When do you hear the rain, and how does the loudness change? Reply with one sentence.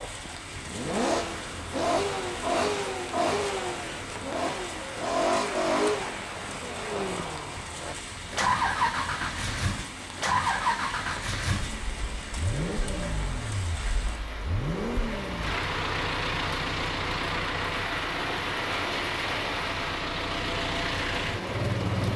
You can hear the rain from 0.0 to 22.1 s, getting louder.